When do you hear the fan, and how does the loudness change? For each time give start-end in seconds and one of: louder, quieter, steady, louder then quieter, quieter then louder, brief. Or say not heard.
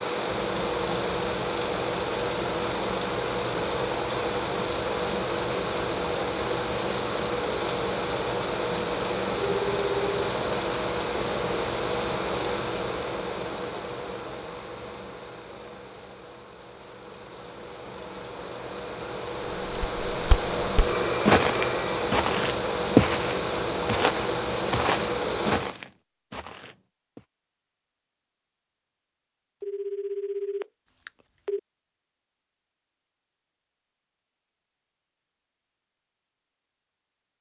0.0-25.8 quieter then louder.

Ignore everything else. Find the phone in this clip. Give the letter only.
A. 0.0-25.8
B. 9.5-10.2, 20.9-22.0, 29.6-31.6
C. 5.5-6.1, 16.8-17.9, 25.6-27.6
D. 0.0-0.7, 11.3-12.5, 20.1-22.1
B.